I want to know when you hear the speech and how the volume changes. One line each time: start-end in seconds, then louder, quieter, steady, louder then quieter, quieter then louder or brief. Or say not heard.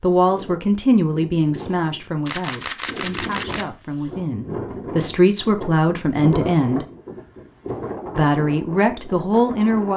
0.0-6.8 quieter then louder
8.2-9.9 brief.